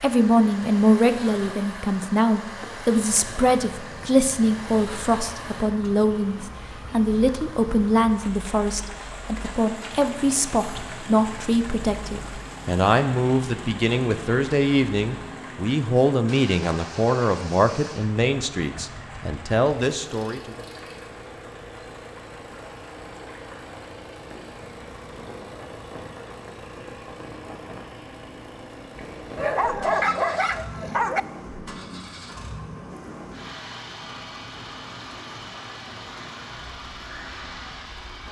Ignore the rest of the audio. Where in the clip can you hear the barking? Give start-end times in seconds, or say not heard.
29.4-31.2.